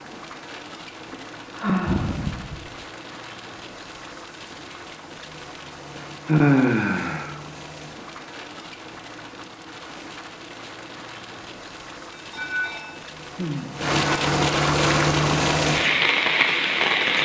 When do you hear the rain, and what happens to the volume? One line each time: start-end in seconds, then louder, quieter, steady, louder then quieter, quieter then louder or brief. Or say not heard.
0.0-17.2 louder.